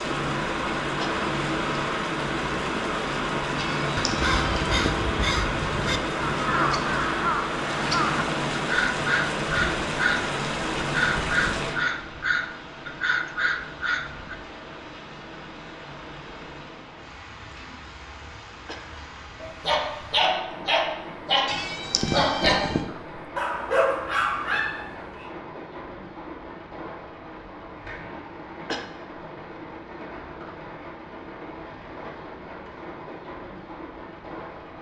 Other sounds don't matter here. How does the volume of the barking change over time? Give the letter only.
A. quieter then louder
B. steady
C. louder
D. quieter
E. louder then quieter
B.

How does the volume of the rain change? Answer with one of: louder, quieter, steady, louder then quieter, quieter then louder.
quieter.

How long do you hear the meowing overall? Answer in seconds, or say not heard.
3 s.